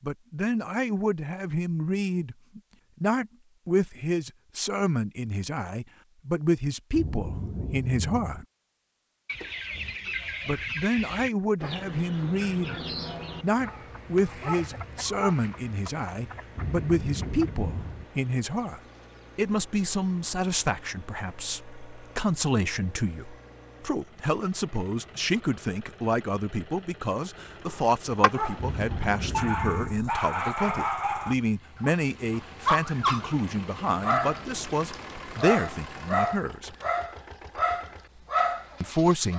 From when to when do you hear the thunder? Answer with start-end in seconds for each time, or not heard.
6.9-8.4, 16.6-18.1, 28.6-29.9.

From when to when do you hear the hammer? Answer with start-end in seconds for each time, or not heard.
not heard.